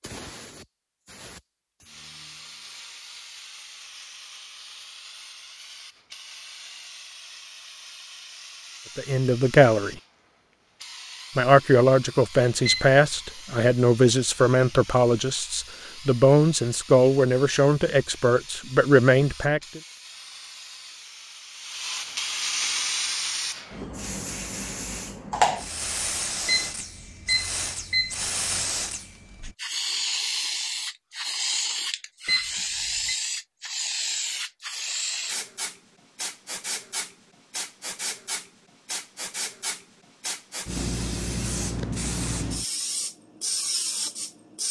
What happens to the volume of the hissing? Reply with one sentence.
The loudness of the hissing goes up.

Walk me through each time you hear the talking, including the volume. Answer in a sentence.
You can hear the talking briefly from 8.9 to 9.9 s; and from 11.3 to 19.8 s, at a steady volume.